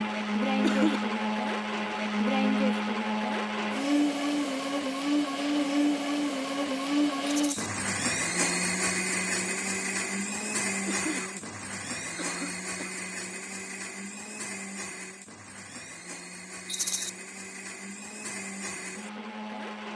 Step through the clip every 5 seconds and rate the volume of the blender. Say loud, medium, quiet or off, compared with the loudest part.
loud, loud, medium, quiet.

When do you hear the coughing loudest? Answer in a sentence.
The loudest moment of the coughing is at 1 second.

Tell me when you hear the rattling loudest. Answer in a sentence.
The volume of the rattling peaks at 17 seconds.